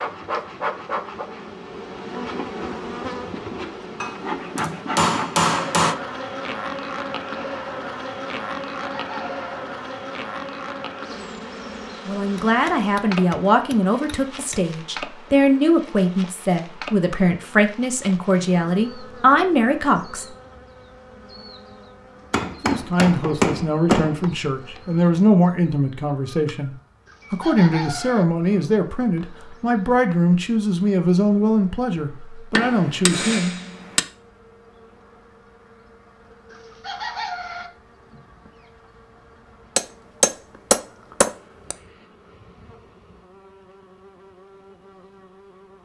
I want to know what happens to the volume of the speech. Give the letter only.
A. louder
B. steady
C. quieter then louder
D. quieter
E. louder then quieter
B.